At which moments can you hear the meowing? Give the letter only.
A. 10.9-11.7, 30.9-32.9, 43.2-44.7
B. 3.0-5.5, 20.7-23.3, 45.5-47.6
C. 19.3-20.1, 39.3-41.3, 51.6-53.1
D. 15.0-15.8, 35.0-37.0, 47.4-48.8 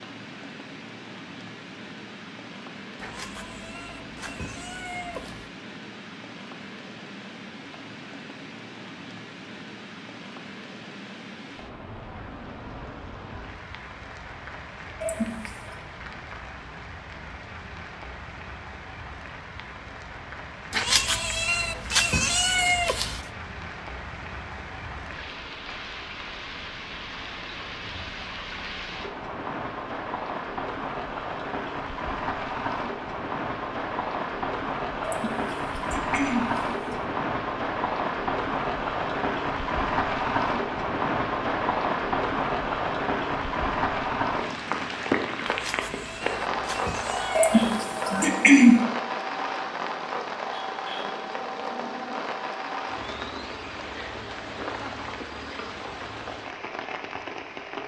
B.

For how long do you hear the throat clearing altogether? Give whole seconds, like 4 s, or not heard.
4 s.